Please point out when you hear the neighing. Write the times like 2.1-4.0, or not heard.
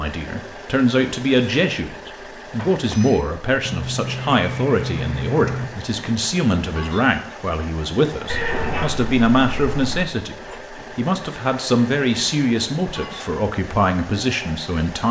3.6-5.7, 8.2-10.1.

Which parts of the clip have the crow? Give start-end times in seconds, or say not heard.
not heard.